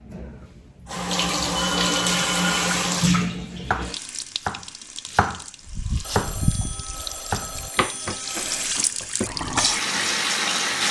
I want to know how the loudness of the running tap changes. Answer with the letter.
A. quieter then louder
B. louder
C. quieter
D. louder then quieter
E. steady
A.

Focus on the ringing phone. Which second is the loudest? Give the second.
2 s.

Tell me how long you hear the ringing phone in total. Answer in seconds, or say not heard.
4 s.